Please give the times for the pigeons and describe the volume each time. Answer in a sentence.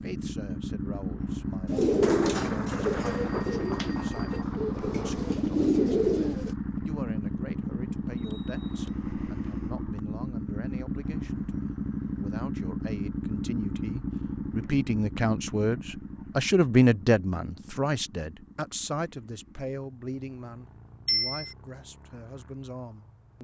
You can hear the pigeons from 1.6 to 6.5 s, getting quieter then louder.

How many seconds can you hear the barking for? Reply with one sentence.
You can't hear the barking here.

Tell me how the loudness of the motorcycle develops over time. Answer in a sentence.
The loudness of the motorcycle goes down.